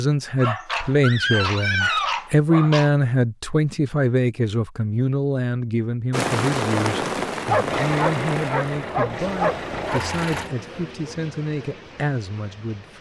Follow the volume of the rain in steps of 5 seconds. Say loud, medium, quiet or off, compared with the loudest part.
off, loud, quiet.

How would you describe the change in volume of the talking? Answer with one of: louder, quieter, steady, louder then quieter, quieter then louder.
quieter.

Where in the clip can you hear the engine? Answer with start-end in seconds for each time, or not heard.
7.7-10.5.